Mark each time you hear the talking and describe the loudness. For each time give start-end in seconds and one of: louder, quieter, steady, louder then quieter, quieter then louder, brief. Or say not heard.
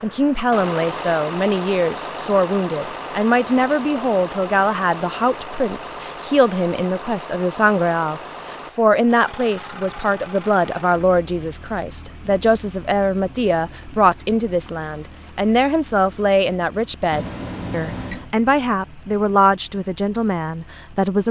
0.0-21.2 steady.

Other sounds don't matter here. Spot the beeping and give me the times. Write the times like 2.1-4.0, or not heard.
17.1-18.3.